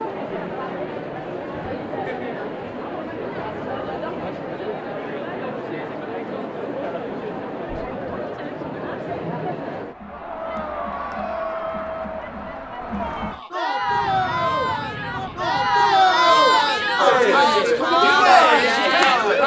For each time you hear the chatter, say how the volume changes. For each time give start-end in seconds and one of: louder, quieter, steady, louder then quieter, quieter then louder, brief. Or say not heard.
0.0-19.4 louder.